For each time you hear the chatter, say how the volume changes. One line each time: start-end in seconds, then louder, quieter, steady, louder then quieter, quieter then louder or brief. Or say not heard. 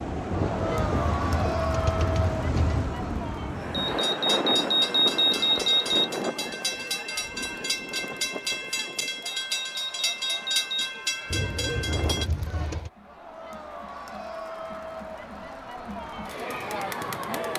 0.1-17.5 quieter then louder.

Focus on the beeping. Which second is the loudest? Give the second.
5 s.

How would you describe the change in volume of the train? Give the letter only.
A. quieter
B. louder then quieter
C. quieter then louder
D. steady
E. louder
D.